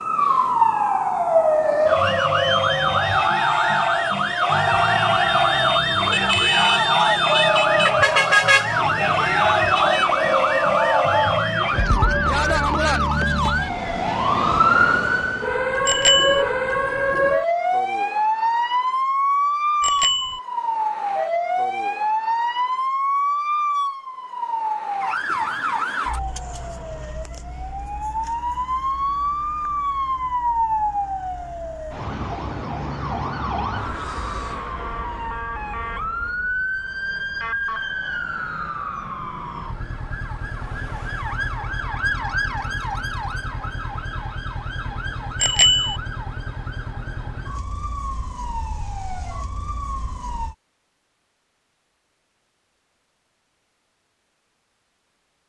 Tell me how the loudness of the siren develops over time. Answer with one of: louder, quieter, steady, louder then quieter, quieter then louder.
quieter.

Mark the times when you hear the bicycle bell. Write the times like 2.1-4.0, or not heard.
15.8-16.4, 19.8-20.4, 45.4-46.0.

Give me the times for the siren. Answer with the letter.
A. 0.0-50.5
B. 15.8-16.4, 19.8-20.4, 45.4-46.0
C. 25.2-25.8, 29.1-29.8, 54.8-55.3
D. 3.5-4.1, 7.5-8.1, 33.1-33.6
A.